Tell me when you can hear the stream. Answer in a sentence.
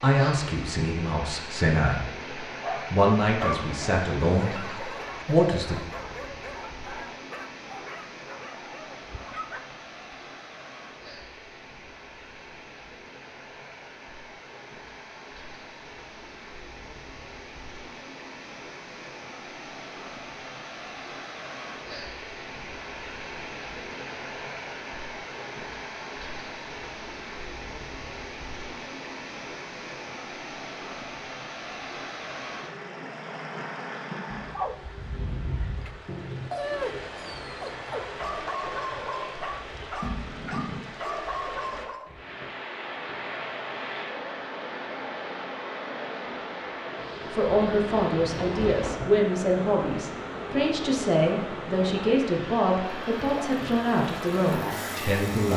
The stream can be heard from 0.0 to 55.5 s.